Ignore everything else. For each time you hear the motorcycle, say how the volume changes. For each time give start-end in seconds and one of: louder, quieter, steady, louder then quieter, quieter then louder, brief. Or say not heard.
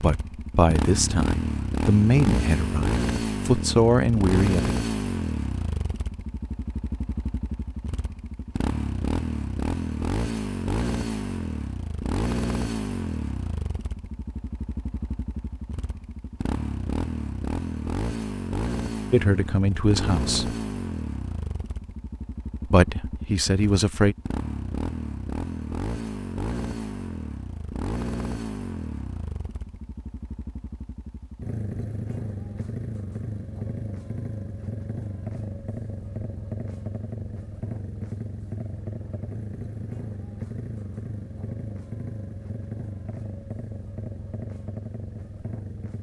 0.0-45.9 quieter.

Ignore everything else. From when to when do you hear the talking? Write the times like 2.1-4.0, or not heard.
0.0-4.7, 19.1-20.6, 22.6-24.1.